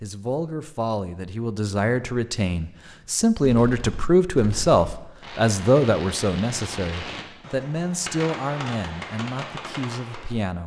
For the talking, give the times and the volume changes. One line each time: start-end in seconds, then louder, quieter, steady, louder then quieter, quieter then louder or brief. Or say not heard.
0.0-10.6 louder then quieter.